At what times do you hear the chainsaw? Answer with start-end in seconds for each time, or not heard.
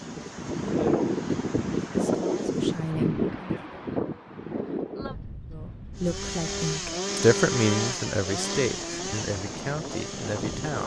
0.0-3.0, 6.0-10.8.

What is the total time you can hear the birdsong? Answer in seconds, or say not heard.
not heard.